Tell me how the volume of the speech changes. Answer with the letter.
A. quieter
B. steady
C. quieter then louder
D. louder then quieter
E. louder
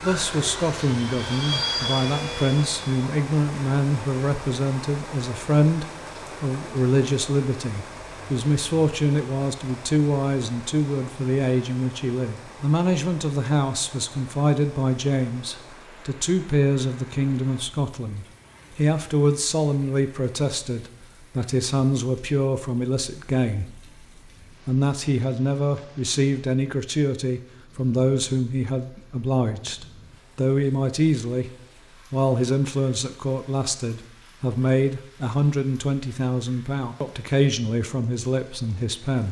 B.